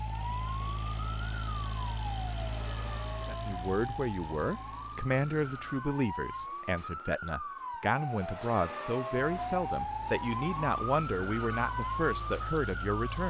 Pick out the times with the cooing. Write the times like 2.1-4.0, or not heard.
not heard.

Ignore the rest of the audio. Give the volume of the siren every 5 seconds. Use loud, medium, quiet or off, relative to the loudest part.
medium, loud, loud.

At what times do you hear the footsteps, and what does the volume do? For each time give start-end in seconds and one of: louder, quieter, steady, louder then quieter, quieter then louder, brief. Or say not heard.
not heard.